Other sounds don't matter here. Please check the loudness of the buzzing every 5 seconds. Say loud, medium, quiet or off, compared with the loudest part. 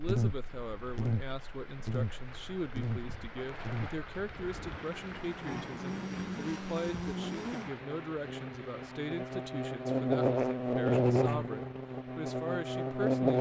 medium, medium, loud.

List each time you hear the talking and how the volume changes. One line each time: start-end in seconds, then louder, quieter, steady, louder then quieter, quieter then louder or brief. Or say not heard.
0.0-13.3 steady.